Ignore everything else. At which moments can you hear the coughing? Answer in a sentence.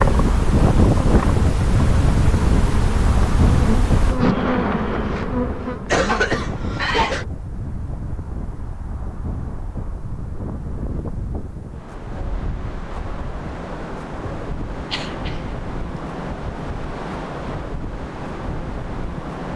The coughing can be heard from 5.8 to 7.2 s and from 14.9 to 16.1 s.